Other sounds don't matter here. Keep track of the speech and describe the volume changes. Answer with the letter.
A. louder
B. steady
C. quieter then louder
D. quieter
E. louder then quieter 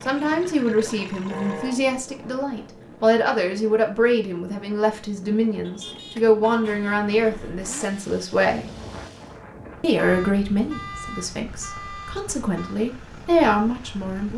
B.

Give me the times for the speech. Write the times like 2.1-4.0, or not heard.
0.0-8.7, 9.8-14.3.